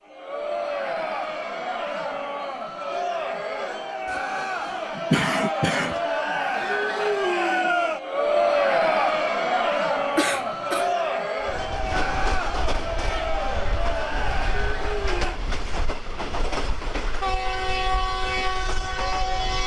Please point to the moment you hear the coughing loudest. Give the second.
5 s.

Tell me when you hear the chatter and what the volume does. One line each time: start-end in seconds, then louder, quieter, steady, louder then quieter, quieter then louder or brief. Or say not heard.
0.0-15.4 louder then quieter.